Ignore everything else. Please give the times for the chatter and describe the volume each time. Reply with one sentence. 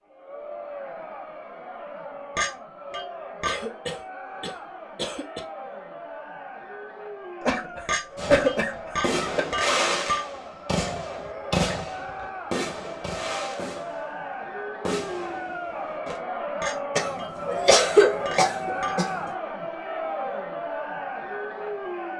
The chatter can be heard from 0.0 to 22.1 s, getting louder.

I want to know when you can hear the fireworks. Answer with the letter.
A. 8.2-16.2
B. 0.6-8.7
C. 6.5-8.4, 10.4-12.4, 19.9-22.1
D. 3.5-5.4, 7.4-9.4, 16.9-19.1
A.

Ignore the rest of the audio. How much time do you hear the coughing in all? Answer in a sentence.
The coughing can be heard for 6 seconds in total.